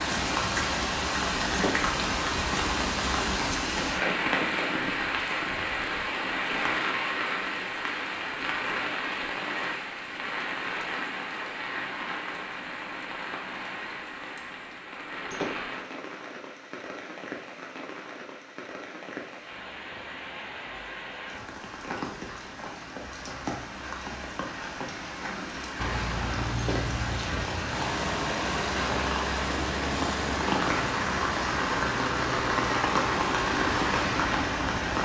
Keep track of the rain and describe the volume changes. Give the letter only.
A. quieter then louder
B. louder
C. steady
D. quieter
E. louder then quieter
A.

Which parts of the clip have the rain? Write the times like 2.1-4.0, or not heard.
0.0-35.0.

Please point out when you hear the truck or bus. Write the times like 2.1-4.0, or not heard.
0.0-3.5, 25.8-34.8.